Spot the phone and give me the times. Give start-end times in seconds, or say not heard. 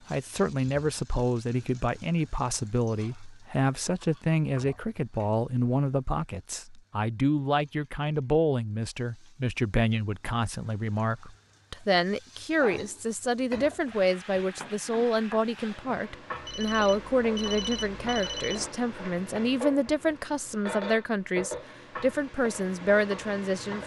16.4-18.7.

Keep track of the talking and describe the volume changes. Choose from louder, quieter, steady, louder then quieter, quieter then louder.
steady.